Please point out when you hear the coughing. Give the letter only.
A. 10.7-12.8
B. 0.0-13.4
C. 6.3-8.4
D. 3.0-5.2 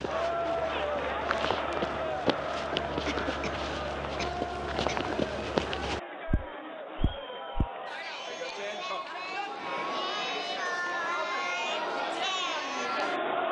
D.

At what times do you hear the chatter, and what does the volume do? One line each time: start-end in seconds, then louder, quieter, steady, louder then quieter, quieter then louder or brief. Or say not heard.
0.0-13.4 quieter then louder.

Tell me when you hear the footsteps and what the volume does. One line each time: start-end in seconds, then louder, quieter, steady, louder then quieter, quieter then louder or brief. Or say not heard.
0.0-7.7 louder then quieter.